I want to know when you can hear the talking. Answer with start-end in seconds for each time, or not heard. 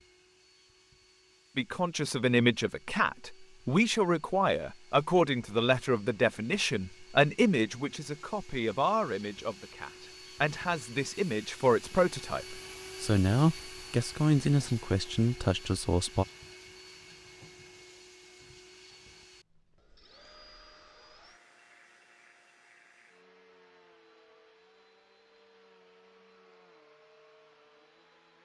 1.6-16.2.